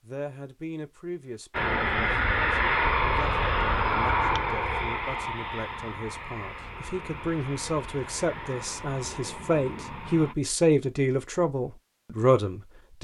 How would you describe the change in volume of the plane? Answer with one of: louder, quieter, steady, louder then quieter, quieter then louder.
quieter.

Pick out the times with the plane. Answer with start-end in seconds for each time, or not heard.
1.5-10.3.